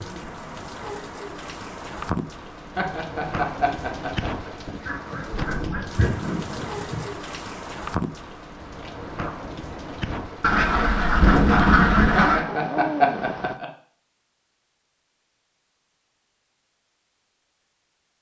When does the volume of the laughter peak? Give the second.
13 s.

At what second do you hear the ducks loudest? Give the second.
12 s.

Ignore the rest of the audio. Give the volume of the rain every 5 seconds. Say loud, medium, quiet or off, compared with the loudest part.
loud, loud, loud, off.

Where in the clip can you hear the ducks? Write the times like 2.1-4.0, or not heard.
4.8-7.0, 10.4-12.4.